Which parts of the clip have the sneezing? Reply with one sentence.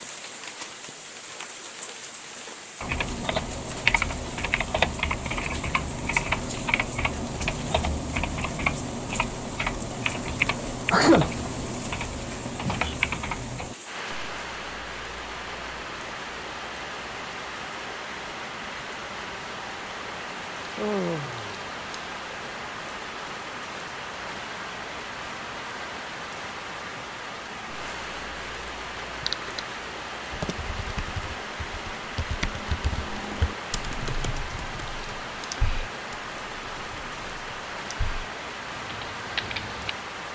The sneezing can be heard from 10.9 to 11.3 s.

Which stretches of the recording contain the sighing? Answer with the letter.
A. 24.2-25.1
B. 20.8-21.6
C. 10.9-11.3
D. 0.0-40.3
B.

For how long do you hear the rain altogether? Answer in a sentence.
The rain can be heard for 40 seconds in total.